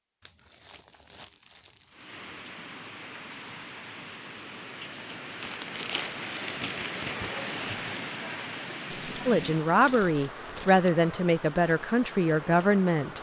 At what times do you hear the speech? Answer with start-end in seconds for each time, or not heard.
9.2-13.1.